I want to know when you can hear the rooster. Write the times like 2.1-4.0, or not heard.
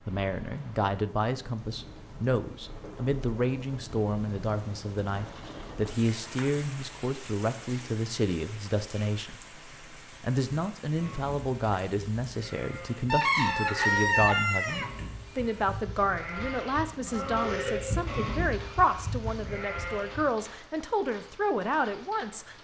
13.1-14.9.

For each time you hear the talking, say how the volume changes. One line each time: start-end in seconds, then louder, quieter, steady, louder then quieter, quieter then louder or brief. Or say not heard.
0.1-9.6 steady
10.2-22.6 steady.